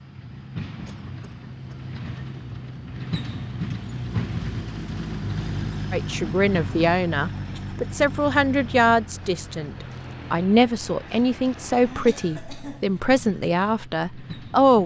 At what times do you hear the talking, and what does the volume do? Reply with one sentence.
You can hear the talking from 5.9 to 14.8 s, at a steady volume.